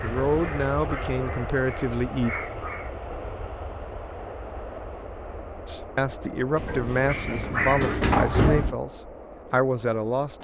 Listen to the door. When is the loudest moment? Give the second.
8 s.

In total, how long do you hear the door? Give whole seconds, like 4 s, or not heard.
3 s.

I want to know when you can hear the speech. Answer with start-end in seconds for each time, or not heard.
0.0-2.4, 5.7-10.4.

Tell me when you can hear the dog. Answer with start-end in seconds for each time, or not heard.
0.0-3.0, 7.0-8.7.